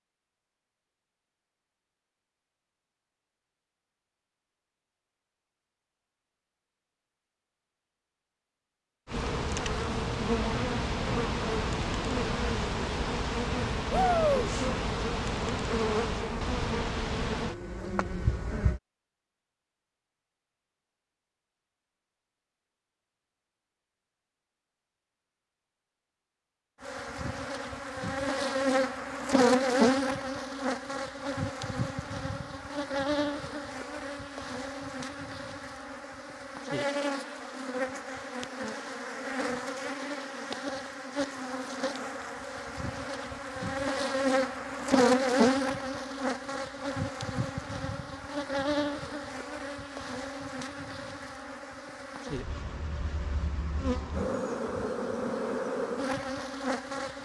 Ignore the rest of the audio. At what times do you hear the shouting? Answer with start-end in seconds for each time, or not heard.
13.9-14.5.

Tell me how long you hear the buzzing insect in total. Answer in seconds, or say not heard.
40 s.